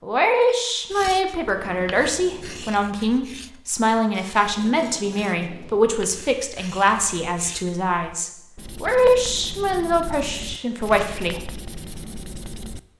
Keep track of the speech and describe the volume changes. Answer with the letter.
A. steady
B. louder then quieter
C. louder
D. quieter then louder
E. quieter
A.